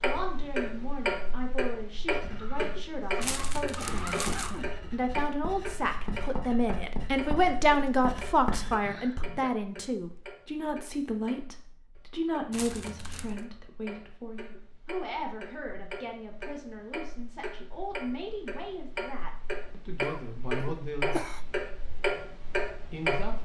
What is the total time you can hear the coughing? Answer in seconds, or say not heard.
5 s.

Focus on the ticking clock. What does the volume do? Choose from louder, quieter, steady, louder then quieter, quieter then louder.
quieter then louder.